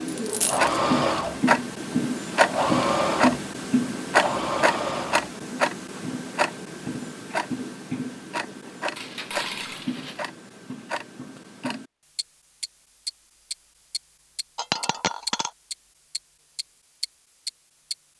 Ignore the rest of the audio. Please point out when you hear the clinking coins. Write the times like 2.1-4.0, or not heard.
0.1-0.8, 8.9-10.2, 14.6-15.5.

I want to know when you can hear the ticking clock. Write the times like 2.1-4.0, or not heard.
0.0-17.9.